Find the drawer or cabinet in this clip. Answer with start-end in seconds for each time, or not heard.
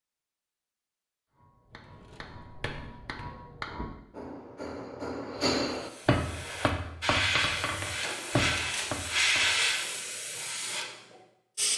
1.7-3.4, 8.0-9.1.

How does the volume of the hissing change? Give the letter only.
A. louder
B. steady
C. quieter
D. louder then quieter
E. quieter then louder
D.